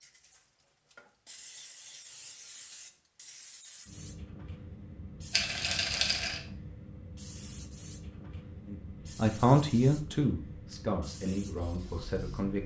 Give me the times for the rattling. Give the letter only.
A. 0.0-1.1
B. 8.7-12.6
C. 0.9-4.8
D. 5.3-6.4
D.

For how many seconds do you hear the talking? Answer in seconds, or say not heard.
4 s.